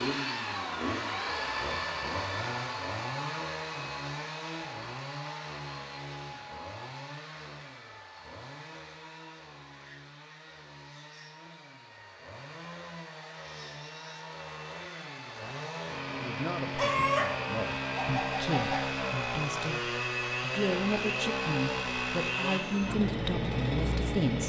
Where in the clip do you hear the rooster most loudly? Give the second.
17 s.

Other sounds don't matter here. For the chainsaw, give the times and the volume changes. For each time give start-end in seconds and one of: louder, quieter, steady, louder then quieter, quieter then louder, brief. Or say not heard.
0.0-24.4 quieter then louder.